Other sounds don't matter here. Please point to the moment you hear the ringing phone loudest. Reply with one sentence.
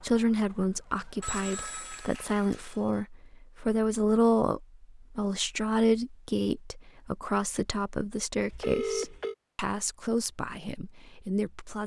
The volume of the ringing phone peaks at 9 seconds.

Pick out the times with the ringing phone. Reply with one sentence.
The ringing phone can be heard from 1.2 to 2.8 s and from 8.5 to 9.3 s.